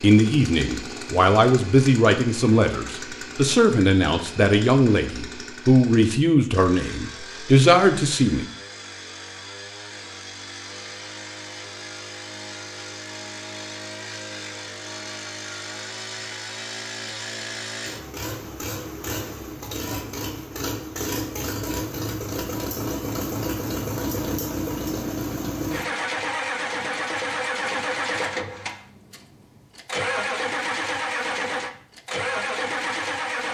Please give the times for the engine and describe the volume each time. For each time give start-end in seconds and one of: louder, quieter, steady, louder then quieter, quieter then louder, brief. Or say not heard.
0.0-33.4 louder.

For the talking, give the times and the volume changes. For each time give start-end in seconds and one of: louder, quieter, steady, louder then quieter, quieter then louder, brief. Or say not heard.
0.0-8.4 steady.